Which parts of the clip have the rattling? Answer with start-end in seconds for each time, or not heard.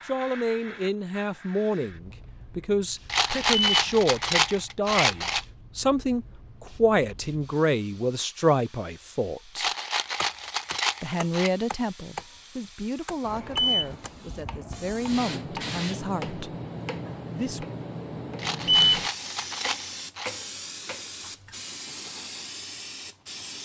3.0-5.5, 9.6-11.5, 18.4-20.4.